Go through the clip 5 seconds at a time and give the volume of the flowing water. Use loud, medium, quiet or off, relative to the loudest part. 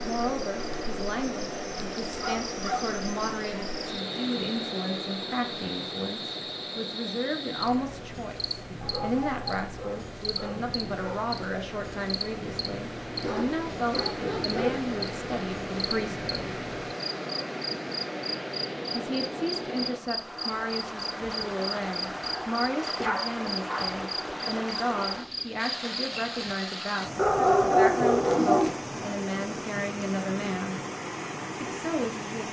loud, medium, loud, loud, loud, loud, loud.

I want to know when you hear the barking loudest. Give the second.
28 s.